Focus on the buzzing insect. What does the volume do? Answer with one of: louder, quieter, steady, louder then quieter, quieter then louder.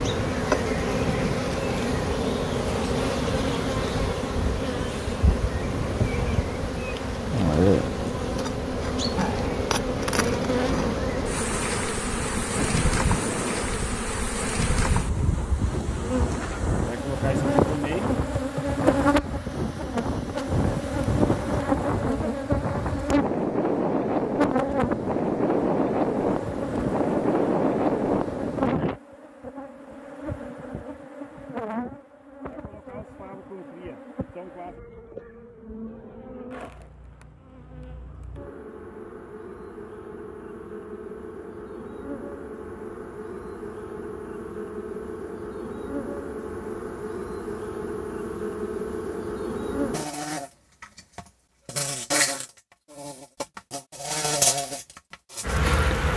quieter then louder.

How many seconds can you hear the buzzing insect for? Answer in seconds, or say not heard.
56 s.